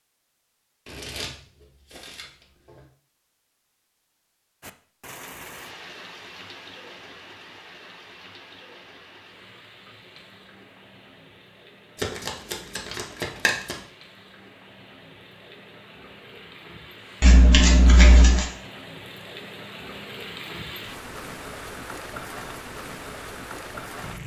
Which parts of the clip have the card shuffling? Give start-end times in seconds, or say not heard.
0.8-2.9, 12.0-13.8, 17.2-18.4.